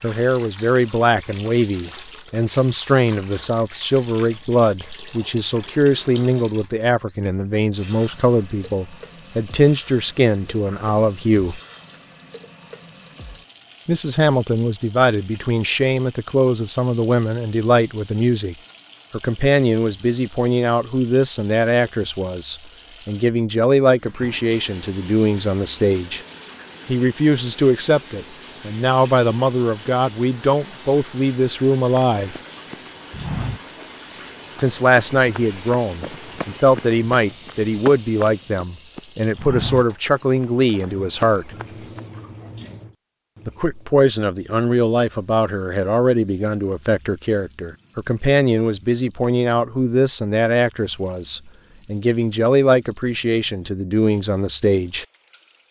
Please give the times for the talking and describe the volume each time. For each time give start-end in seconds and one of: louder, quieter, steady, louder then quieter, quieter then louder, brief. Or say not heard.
0.0-11.6 steady
13.8-26.2 steady
26.9-32.4 steady
34.5-41.5 steady
43.5-55.0 steady.